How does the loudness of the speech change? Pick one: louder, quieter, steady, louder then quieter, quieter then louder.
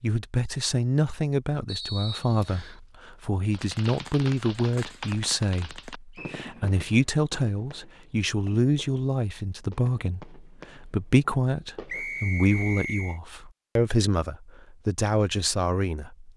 steady.